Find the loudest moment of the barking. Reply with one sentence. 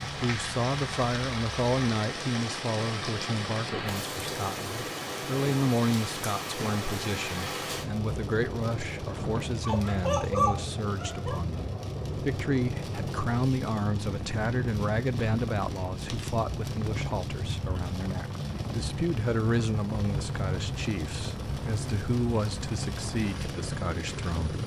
The volume of the barking peaks at 10 seconds.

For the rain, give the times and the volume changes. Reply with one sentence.
The rain can be heard from 0.0 to 24.6 s, at a steady volume.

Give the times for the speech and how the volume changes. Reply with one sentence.
You can hear the speech from 0.0 to 24.6 s, at a steady volume.